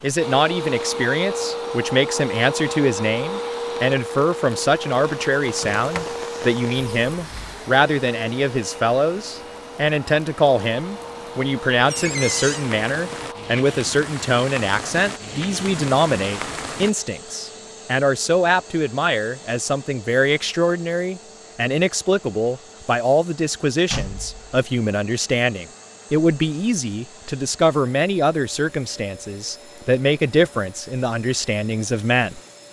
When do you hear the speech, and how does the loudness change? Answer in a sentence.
You can hear the speech from 0.0 to 32.4 s, at a steady volume.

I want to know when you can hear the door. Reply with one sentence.
The door can be heard from 5.5 to 6.1 s, from 6.7 to 7.6 s, from 11.9 to 12.7 s and from 23.9 to 24.4 s.